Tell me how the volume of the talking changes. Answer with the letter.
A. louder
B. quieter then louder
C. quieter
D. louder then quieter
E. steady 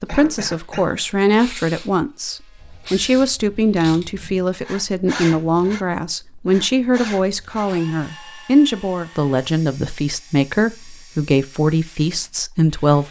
E.